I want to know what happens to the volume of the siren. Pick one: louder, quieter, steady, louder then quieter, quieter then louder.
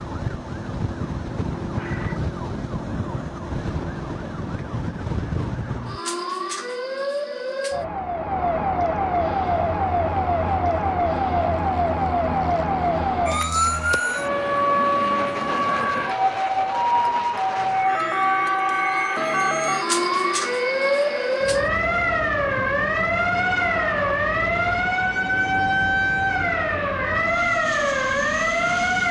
louder.